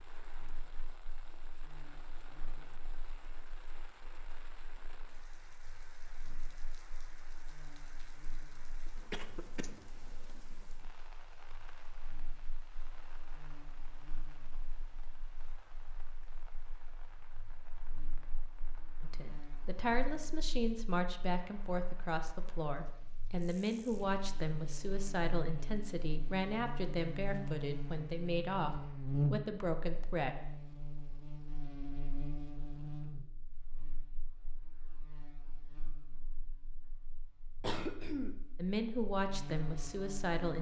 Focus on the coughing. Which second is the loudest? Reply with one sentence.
The loudest moment of the coughing is at 38 seconds.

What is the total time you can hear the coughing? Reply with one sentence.
You can hear the coughing for 2 seconds altogether.